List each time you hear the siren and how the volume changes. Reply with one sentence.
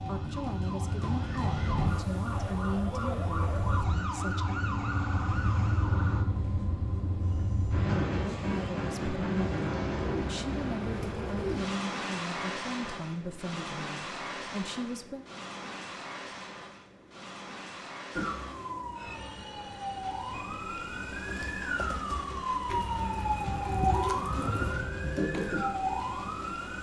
You can hear the siren from 0.0 to 6.2 s, at a steady volume; and from 18.1 to 26.7 s, getting louder.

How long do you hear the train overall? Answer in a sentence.
You can hear the train for 27 seconds altogether.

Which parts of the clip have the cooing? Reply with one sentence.
You can hear the cooing from 9.9 to 11.8 s and from 22.6 to 24.7 s.